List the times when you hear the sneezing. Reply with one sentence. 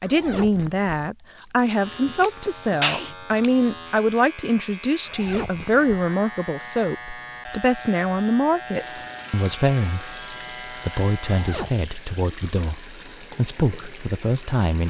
You can hear the sneezing from 1.4 to 3.1 s.